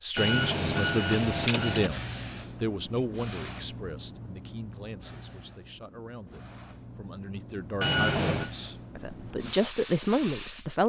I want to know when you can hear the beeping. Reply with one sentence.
The beeping can be heard from 0.1 to 1.9 s and from 7.8 to 8.5 s.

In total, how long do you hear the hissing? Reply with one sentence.
You can hear the hissing for 9 seconds altogether.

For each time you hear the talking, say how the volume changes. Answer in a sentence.
You can hear the talking from 0.0 to 10.8 s, getting quieter then louder.